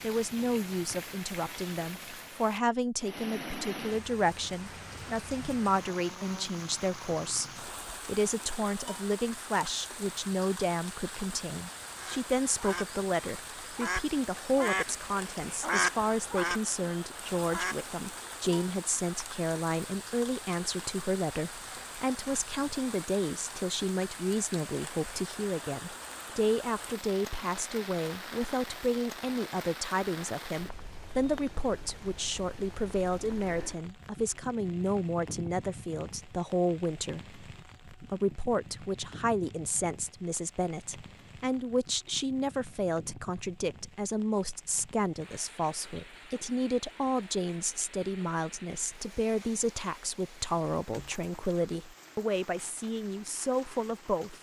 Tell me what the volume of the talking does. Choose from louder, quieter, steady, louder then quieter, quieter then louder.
steady.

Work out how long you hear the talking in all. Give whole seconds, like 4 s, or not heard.
54 s.